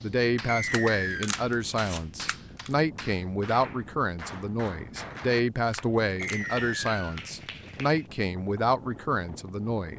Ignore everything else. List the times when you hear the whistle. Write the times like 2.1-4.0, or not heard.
0.5-1.3, 6.2-7.2.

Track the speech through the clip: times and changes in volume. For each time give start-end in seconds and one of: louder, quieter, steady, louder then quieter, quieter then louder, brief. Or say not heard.
0.0-9.9 steady.